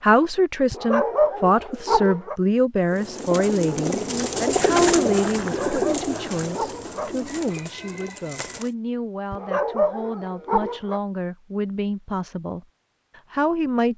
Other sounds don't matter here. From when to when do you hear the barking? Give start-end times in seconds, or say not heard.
0.7-2.4, 5.5-7.2, 9.3-11.0.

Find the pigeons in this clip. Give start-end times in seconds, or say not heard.
2.8-8.8.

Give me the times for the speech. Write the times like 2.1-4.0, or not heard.
0.0-13.9.